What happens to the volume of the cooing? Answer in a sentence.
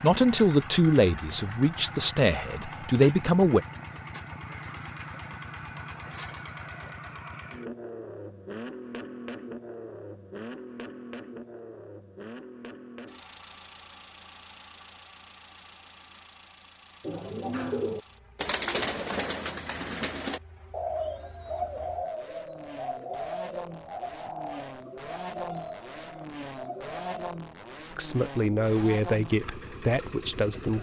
The loudness of the cooing goes down.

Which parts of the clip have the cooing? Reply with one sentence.
You can hear the cooing from 17.0 to 27.4 s.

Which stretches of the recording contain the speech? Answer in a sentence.
The speech can be heard from 0.0 to 3.6 s and from 27.9 to 30.7 s.